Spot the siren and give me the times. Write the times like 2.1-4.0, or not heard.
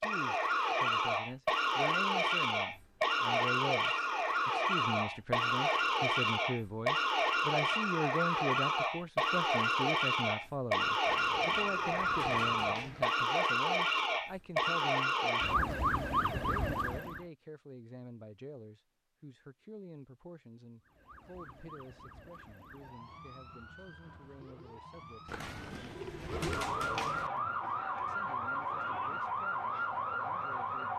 0.0-17.2, 20.9-30.9.